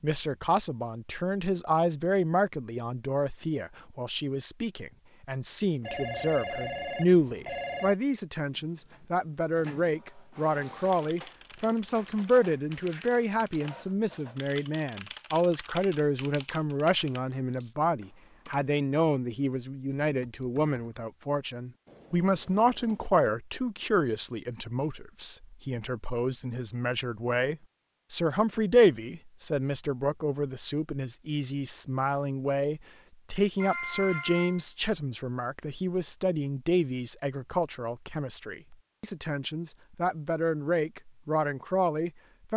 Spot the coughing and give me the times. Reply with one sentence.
You can't hear the coughing here.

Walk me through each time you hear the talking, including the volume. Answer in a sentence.
You can hear the talking from 0.0 to 42.5 s, at a steady volume.